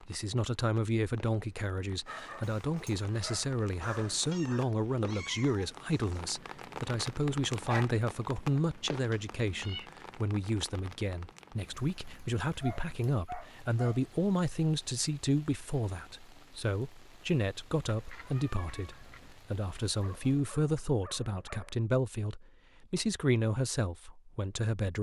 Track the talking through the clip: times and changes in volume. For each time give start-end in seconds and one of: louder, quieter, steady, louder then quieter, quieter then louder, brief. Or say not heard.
0.0-24.9 steady.